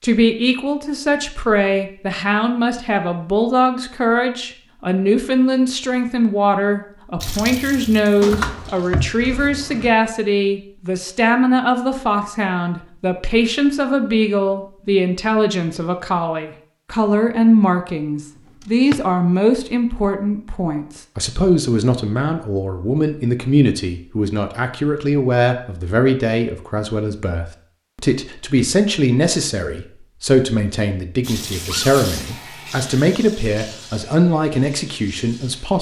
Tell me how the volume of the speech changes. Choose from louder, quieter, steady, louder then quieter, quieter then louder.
steady.